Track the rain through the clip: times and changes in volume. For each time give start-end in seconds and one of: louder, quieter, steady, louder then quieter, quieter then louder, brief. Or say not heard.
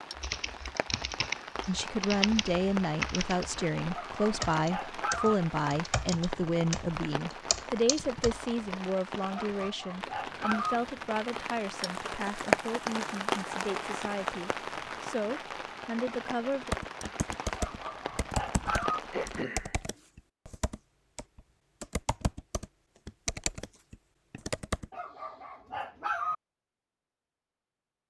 0.0-19.4 louder then quieter.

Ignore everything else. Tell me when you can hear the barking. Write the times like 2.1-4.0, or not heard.
3.9-5.3, 9.3-10.8, 17.6-19.0, 24.9-26.4.